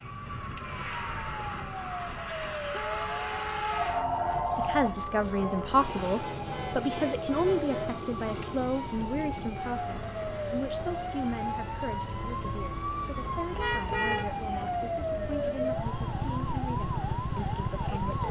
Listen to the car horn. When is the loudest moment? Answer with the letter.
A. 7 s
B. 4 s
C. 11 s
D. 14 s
D.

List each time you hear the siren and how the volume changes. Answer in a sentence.
You can hear the siren from 0.0 to 18.2 s, getting louder.